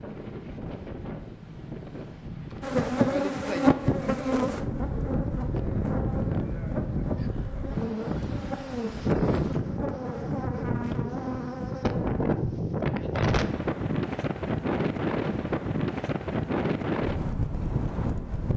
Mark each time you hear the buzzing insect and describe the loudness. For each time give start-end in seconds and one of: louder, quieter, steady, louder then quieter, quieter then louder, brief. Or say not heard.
2.6-12.2 quieter.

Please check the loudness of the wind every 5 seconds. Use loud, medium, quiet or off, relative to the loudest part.
medium, loud, loud, loud.